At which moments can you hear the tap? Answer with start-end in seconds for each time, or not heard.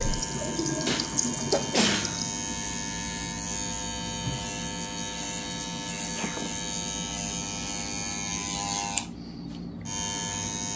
0.0-2.4.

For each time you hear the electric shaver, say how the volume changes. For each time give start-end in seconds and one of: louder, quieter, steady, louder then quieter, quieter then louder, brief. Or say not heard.
0.0-10.7 steady.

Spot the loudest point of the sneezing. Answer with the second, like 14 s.
2 s.